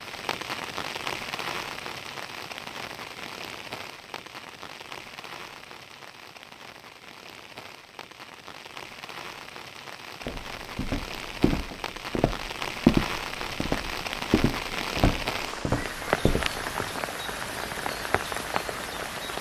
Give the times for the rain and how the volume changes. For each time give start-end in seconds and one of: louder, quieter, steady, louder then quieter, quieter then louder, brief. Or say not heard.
0.0-19.3 quieter then louder.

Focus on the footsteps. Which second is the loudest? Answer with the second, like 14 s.
13 s.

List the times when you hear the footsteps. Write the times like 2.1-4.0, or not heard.
10.2-17.0.